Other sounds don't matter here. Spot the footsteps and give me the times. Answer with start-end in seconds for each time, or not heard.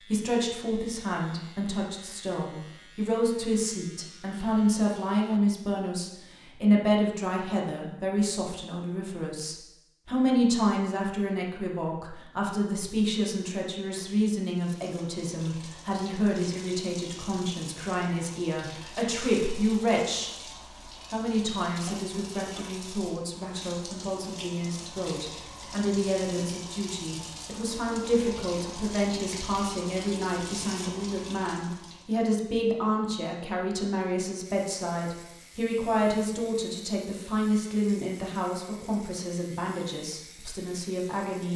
not heard.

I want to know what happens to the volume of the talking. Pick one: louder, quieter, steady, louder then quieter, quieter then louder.
steady.